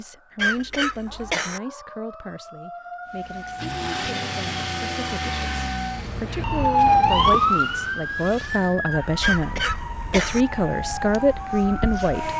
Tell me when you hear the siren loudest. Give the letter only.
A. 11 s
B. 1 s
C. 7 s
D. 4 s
C.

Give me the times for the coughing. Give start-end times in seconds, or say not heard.
0.3-1.6, 9.2-10.4.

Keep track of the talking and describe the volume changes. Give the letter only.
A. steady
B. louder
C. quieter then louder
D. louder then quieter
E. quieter
C.